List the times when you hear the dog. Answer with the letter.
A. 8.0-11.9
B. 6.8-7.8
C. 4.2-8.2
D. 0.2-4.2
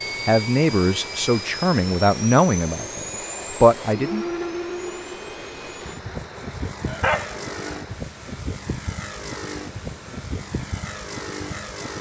B.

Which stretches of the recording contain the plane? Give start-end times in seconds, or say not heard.
0.0-11.9.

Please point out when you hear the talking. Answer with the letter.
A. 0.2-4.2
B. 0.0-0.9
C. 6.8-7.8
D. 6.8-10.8
A.